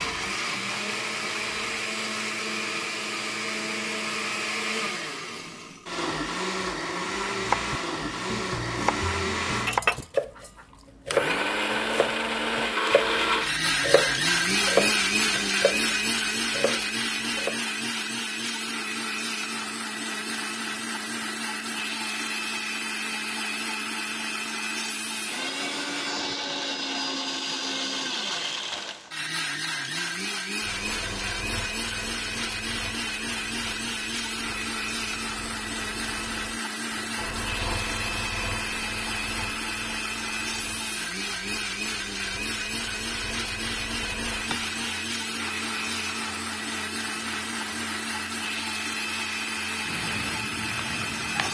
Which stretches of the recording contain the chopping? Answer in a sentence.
The chopping can be heard from 7.3 to 17.6 s.